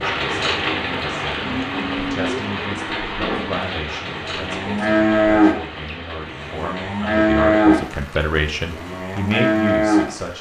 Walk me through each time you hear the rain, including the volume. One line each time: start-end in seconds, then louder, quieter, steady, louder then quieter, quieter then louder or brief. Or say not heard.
0.0-10.3 quieter.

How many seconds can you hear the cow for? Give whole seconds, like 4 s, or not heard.
9 s.